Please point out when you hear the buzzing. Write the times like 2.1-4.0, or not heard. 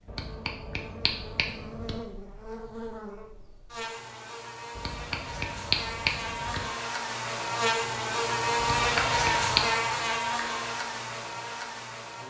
0.0-12.2.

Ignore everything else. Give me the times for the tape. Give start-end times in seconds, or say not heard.
not heard.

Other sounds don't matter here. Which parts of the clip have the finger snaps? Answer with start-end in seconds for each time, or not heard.
0.1-2.0, 4.8-6.7, 8.6-9.8.